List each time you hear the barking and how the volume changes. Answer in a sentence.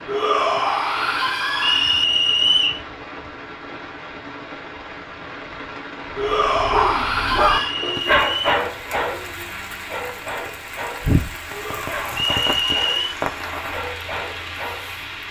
You can hear the barking from 6.3 to 14.9 s, getting quieter.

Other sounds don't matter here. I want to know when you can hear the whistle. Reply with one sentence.
You can hear the whistle from 1.6 to 2.8 s, from 7.5 to 8.7 s and from 12.2 to 13.2 s.